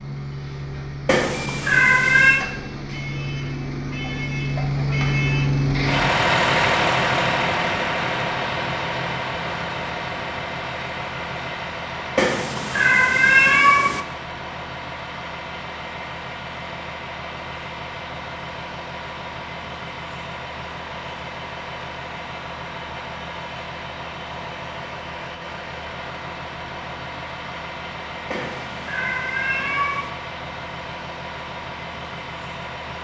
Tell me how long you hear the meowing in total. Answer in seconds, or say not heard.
5 s.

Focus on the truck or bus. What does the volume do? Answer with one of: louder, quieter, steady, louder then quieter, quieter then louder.
quieter.